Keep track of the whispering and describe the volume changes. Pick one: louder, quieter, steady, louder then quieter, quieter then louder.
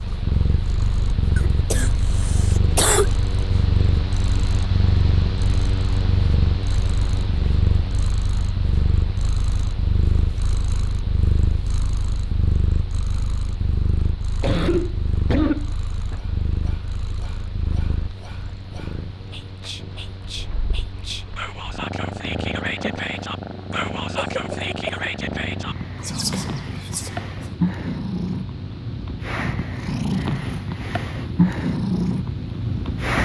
louder.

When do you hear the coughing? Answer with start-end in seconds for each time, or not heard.
1.4-3.1, 14.4-15.7, 23.7-25.1.